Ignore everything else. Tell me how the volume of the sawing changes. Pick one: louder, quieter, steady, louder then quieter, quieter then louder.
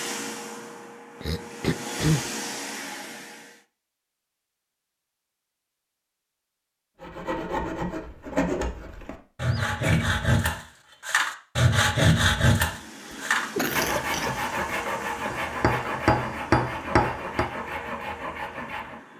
louder then quieter.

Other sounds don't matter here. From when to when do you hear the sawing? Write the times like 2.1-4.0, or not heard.
7.0-19.0.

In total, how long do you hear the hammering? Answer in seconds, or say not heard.
2 s.